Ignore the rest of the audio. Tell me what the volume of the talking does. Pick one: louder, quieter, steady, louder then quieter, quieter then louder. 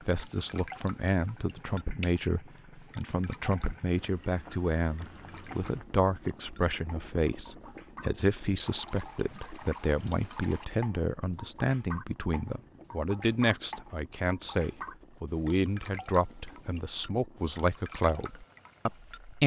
steady.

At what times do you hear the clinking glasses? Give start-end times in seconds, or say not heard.
not heard.